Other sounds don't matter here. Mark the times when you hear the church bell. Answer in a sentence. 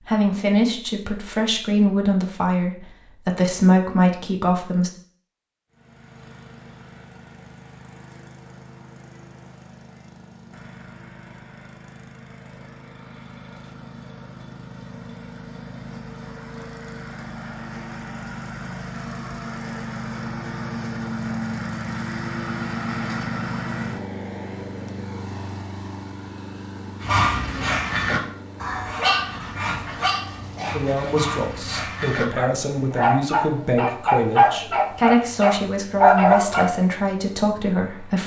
You can't hear the church bell here.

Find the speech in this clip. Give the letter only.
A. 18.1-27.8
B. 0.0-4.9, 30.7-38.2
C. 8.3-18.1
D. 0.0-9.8
B.